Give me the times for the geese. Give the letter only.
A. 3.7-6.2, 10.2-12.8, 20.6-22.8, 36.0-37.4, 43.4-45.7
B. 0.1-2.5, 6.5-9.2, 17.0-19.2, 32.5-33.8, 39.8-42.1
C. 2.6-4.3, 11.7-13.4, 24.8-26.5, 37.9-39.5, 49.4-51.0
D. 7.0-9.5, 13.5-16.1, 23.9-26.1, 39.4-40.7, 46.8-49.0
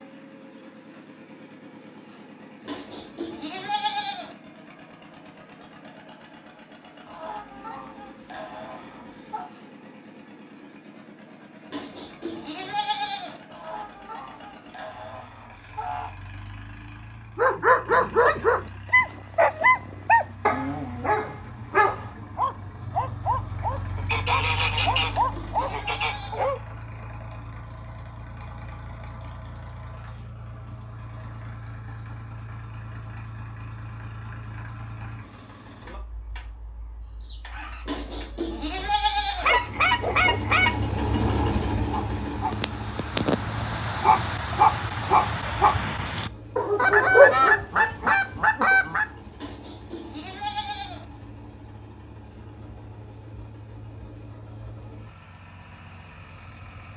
D.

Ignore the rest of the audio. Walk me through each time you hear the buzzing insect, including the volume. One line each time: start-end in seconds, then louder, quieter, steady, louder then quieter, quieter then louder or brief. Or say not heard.
not heard.